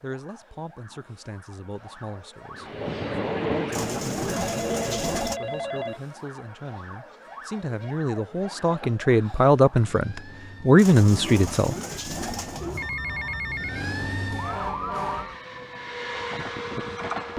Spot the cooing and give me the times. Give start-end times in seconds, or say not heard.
3.7-5.4, 10.8-12.9.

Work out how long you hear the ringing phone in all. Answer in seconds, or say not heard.
3 s.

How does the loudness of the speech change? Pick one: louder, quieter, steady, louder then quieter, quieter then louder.
louder.